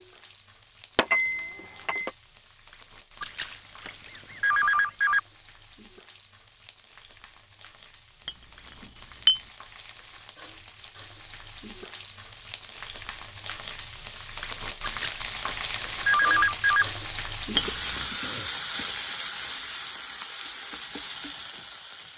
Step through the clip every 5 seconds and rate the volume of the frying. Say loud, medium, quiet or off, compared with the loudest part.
quiet, quiet, medium, loud, medium.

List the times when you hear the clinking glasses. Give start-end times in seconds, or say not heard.
0.9-2.1, 8.2-9.4, 17.6-18.1.